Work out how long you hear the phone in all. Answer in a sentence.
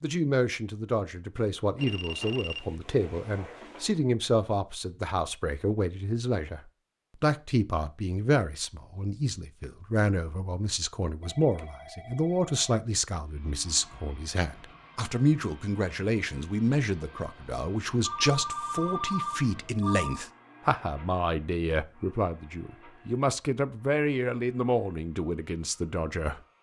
You can hear the phone for 6 seconds altogether.